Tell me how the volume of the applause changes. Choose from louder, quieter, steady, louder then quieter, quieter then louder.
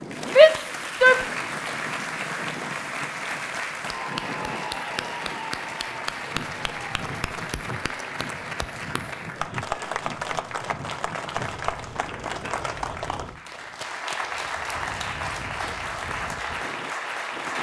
steady.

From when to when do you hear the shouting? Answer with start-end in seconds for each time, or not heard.
0.2-1.1.